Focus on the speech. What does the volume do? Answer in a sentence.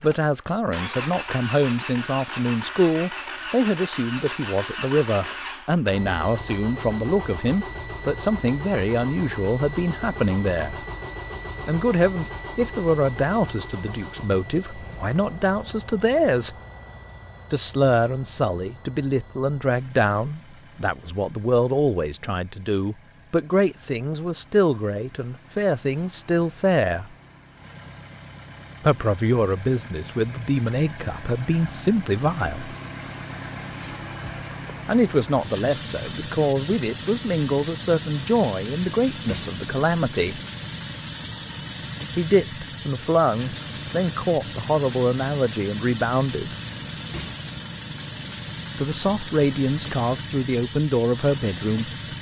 The loudness of the speech stays about the same.